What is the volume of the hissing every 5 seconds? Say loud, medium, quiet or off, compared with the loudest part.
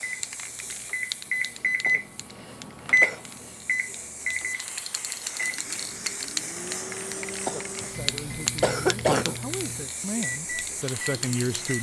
medium, loud, loud.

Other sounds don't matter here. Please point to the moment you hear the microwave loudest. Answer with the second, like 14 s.
3 s.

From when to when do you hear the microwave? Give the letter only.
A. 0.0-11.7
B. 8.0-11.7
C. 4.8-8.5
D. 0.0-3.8
A.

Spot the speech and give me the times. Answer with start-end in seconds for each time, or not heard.
8.0-11.7.